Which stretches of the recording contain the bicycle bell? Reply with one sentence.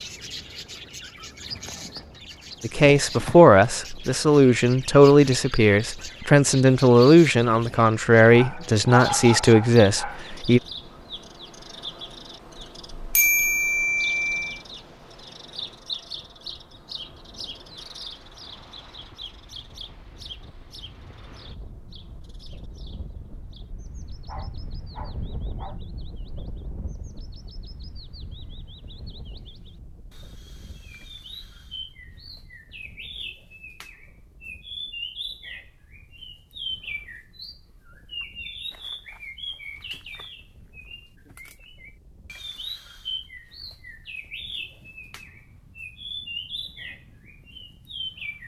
The bicycle bell can be heard from 13.2 to 14.6 s.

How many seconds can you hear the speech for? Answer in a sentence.
You can hear the speech for 8 seconds altogether.